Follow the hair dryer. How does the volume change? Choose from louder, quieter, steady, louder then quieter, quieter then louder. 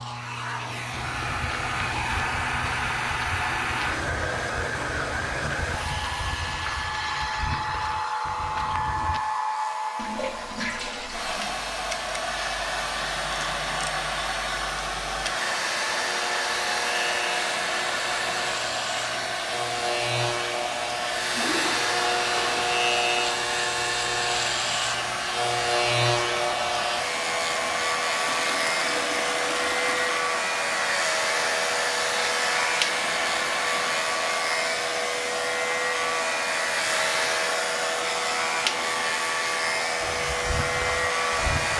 steady.